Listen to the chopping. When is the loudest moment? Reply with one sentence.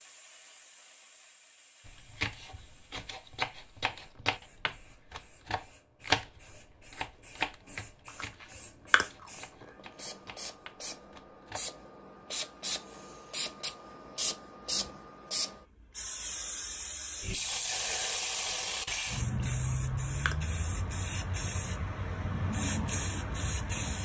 The loudest moment of the chopping is at 6 seconds.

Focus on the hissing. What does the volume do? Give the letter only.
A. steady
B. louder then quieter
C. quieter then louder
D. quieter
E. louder
E.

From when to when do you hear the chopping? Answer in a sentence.
You can hear the chopping from 1.9 to 11.6 s.